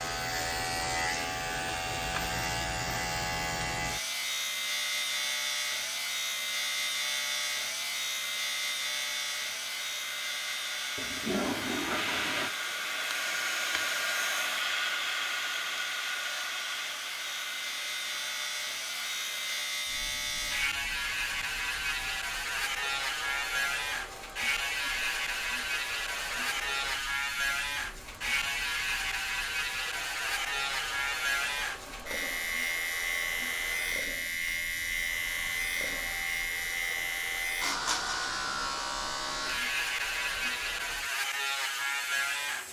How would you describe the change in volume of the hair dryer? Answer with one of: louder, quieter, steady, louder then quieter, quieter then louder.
louder then quieter.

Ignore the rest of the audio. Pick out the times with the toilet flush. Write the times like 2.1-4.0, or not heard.
10.9-12.6.